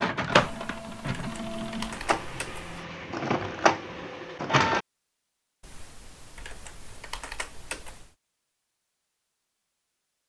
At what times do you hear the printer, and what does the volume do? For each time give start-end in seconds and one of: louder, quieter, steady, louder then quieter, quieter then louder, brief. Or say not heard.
0.0-4.8 louder.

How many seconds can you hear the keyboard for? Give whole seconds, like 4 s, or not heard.
5 s.